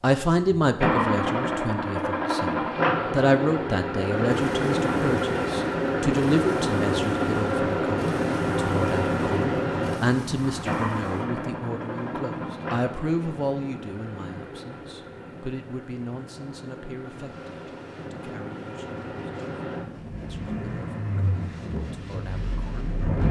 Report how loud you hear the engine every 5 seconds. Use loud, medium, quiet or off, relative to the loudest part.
loud, loud, medium, quiet, medium.